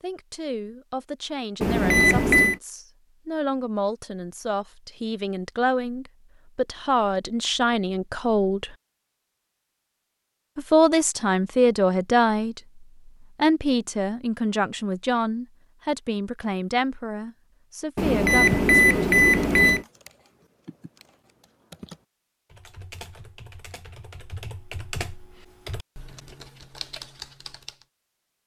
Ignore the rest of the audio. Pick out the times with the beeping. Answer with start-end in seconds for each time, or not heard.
1.6-2.5, 17.9-19.9.